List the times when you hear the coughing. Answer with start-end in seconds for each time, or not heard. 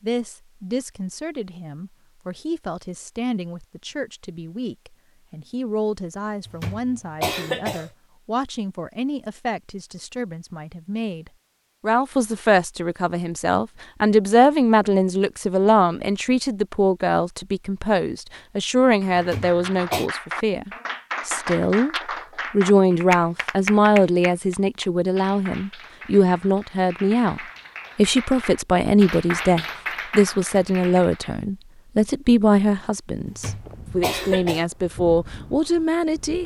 6.5-7.9, 19.1-20.1, 33.2-34.6.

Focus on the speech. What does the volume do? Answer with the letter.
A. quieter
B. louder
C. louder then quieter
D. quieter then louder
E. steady
B.